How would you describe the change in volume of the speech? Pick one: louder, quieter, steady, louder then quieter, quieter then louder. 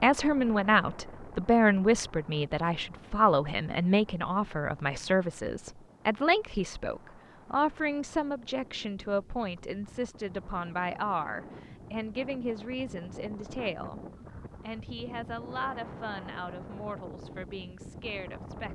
quieter.